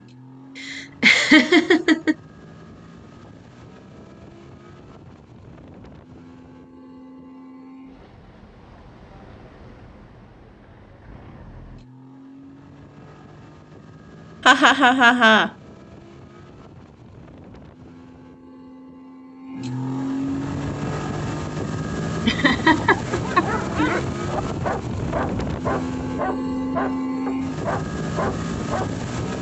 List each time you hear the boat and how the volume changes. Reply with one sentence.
You can hear the boat from 0.0 to 29.3 s, getting louder.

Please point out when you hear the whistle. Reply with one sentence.
The whistle can't be heard in this clip.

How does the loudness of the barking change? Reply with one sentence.
The volume of the barking stays about the same.